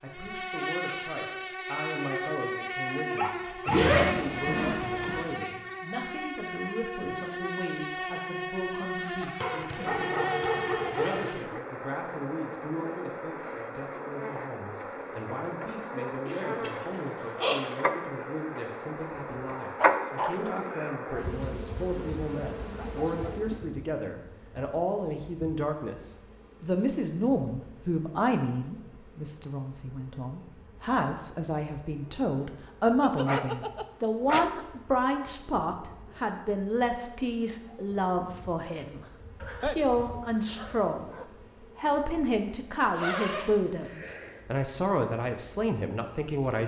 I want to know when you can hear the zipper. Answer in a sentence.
The zipper can be heard from 3.6 to 5.2 s, from 16.2 to 17.6 s and from 42.9 to 44.4 s.